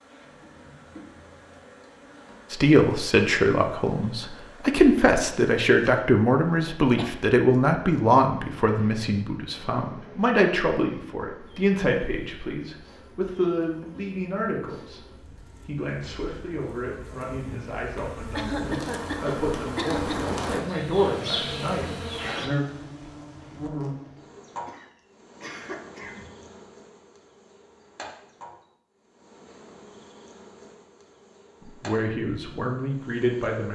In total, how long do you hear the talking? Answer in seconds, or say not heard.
22 s.